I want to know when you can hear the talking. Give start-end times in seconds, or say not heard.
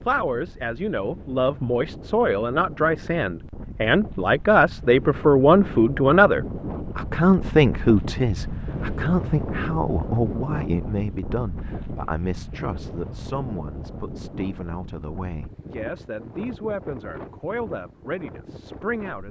0.1-19.2.